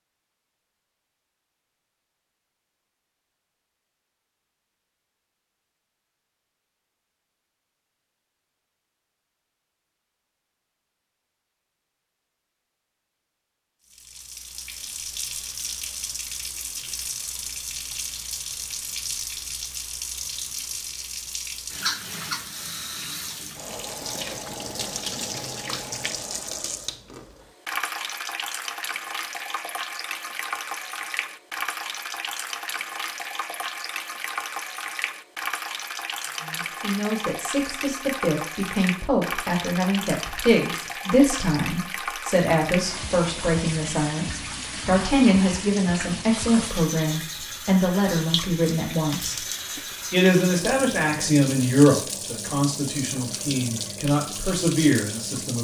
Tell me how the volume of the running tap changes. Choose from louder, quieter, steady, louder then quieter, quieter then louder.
steady.